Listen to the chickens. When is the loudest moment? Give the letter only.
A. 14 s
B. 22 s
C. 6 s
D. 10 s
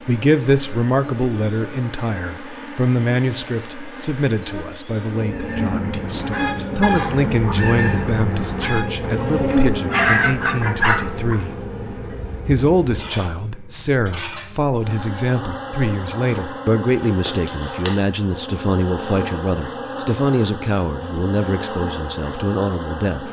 D.